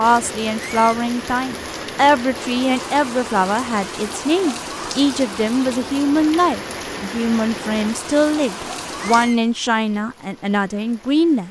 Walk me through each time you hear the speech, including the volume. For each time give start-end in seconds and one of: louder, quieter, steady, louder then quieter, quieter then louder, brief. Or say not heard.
0.0-11.4 steady.